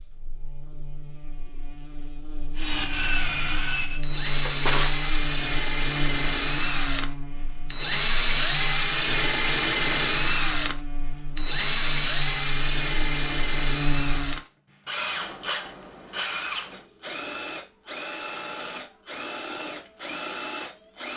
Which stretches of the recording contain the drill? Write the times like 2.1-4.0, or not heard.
2.5-21.1.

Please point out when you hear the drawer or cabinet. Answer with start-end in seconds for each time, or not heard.
4.3-5.1.